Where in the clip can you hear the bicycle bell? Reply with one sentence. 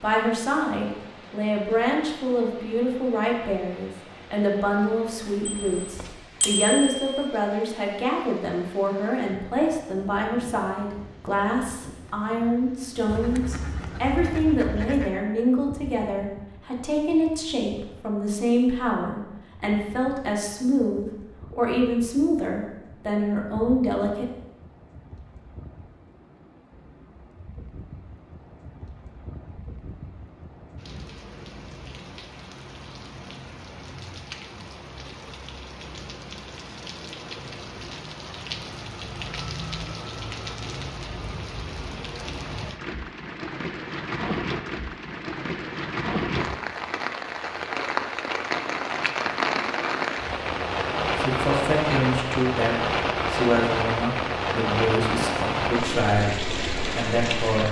The bicycle bell can be heard from 5.5 to 7.2 s.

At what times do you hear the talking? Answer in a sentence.
The talking can be heard from 0.0 to 24.2 s and from 51.1 to 57.6 s.